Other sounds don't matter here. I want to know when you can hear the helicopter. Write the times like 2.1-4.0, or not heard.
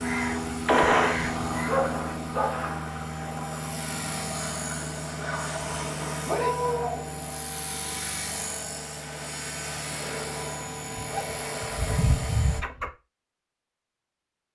0.0-12.6.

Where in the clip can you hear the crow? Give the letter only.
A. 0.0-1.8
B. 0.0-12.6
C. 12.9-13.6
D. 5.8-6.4
A.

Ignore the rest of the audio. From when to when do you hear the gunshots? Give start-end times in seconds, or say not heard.
0.7-1.2.